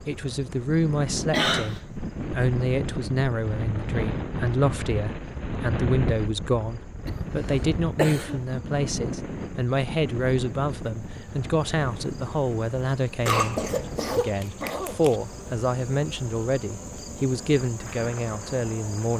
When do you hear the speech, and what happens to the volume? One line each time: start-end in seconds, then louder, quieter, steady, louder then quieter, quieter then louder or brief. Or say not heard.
0.1-19.1 steady.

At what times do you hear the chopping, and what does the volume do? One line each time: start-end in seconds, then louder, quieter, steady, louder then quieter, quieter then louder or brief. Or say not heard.
not heard.